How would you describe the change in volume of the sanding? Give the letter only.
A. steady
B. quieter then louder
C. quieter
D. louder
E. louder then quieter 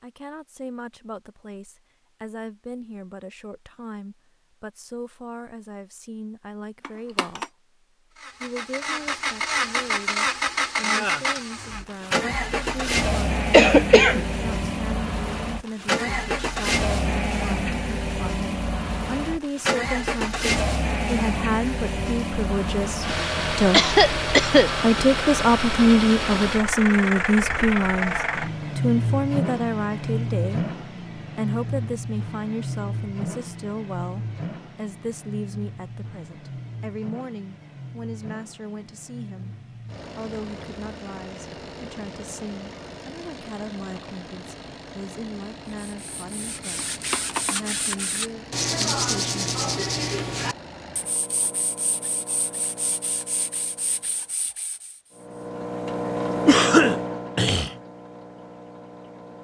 E.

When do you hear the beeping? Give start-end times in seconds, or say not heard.
6.8-7.5, 46.8-48.0.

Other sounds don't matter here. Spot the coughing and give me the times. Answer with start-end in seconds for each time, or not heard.
13.5-14.8, 23.1-24.8, 56.5-57.7.